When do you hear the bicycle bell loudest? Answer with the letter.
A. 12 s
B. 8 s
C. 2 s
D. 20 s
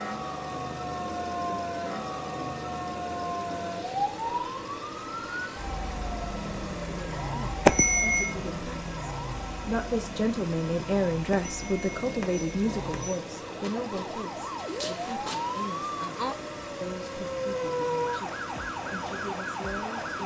B.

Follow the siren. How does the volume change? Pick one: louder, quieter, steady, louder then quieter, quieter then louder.
quieter then louder.